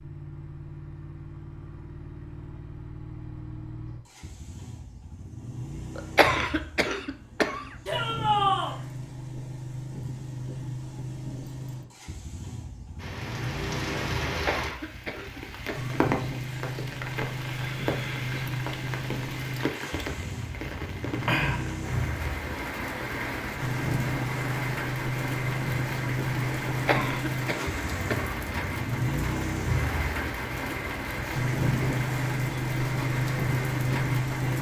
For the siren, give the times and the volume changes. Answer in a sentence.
The siren can't be heard in this clip.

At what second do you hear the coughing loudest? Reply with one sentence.
The volume of the coughing peaks at 6 seconds.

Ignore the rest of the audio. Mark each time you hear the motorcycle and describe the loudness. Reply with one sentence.
You can hear the motorcycle from 0.0 to 34.5 s, getting louder.